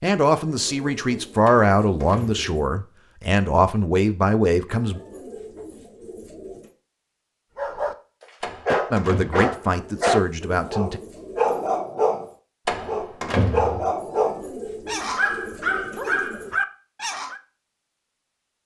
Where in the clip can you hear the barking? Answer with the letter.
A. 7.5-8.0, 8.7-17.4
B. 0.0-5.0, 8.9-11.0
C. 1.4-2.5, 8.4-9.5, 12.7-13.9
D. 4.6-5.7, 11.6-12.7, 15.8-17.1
A.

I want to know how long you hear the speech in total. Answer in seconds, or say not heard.
7 s.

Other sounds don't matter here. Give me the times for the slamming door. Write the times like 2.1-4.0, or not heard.
1.4-2.5, 8.4-9.5, 12.7-13.9.